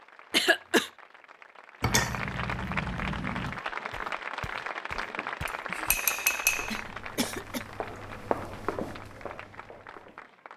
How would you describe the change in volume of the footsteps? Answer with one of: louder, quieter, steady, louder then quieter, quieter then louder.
louder.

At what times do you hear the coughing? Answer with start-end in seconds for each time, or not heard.
0.3-0.9, 5.7-7.7.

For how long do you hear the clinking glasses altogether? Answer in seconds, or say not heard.
3 s.